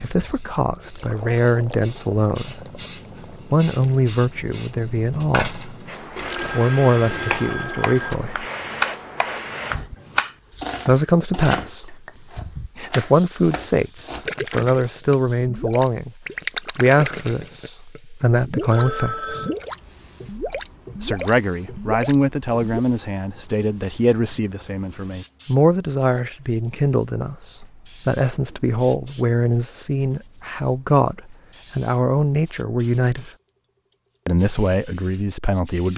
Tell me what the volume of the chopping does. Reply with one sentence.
The volume of the chopping goes up, then down.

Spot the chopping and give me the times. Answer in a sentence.
The chopping can be heard from 7.1 to 14.2 s.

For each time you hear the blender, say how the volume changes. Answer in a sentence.
The blender can't be heard in this clip.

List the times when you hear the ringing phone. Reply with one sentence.
The ringing phone can be heard from 6.2 to 8.2 s and from 18.7 to 19.6 s.